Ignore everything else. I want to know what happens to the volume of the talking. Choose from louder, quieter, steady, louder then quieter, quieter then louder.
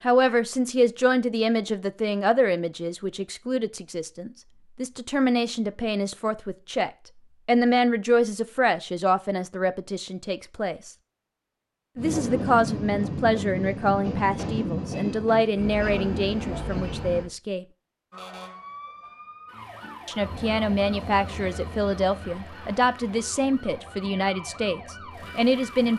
steady.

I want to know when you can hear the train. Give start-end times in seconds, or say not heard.
11.9-17.3, 20.1-25.9.